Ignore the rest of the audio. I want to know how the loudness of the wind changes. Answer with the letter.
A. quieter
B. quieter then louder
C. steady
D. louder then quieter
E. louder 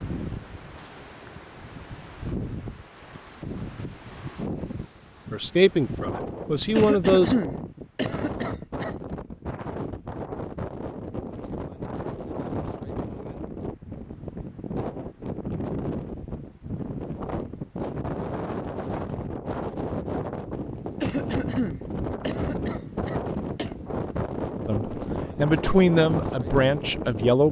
E.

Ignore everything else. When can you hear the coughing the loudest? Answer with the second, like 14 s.
7 s.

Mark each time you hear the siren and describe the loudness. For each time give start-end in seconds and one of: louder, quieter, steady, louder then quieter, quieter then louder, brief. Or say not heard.
not heard.